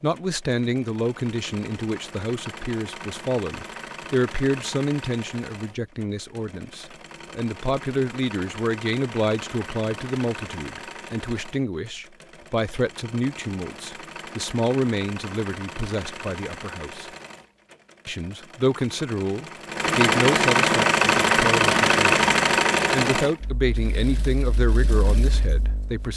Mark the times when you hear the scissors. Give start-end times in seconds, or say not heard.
not heard.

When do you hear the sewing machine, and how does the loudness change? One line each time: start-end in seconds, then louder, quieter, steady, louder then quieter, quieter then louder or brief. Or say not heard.
0.0-26.1 louder.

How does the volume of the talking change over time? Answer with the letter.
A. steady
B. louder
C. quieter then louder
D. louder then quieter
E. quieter
A.